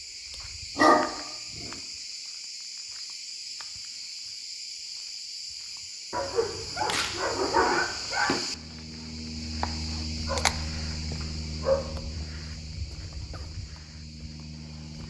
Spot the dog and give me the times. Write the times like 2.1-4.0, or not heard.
0.8-1.7, 6.1-8.4, 10.2-11.8.